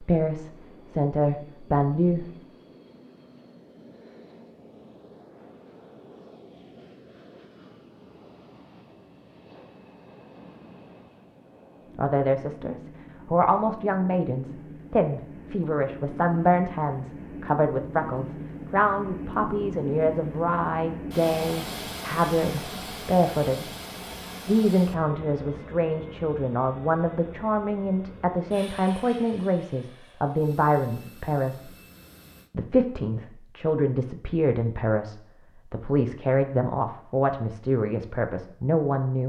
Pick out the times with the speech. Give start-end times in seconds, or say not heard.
0.0-2.4, 11.9-23.7, 24.4-31.7, 32.5-39.2.